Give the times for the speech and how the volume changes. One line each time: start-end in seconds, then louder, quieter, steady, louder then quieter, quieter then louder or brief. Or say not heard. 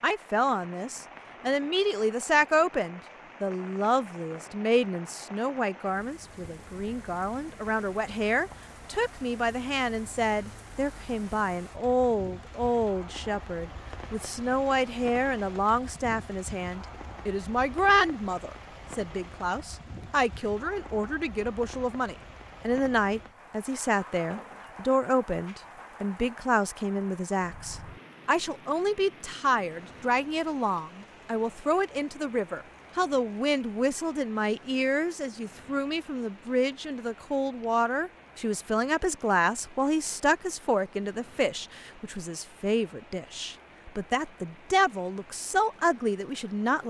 0.0-46.8 steady.